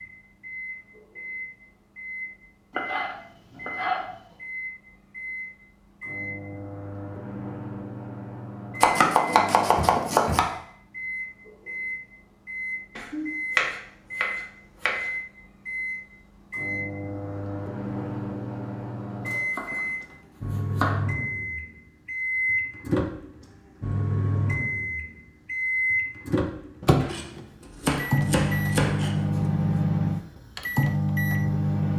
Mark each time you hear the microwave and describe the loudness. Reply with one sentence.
You can hear the microwave from 0.0 to 31.9 s, getting louder.